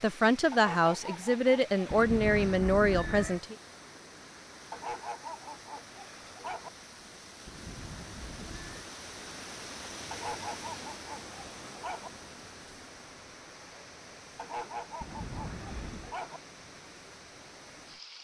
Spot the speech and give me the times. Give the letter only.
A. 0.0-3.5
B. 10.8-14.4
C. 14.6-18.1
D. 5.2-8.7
A.